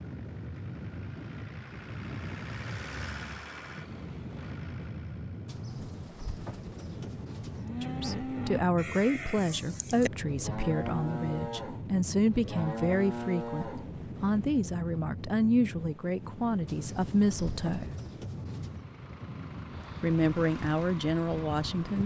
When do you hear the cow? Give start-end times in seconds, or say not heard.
7.5-13.9.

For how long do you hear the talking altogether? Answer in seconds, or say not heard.
12 s.